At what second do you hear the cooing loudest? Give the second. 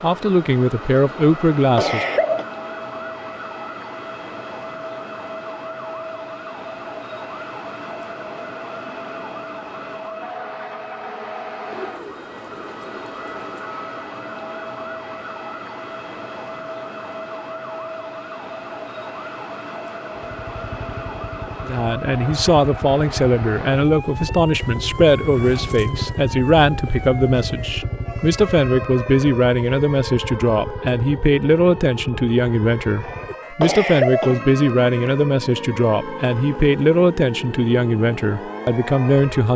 12 s.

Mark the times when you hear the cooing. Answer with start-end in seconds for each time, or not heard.
11.7-13.5.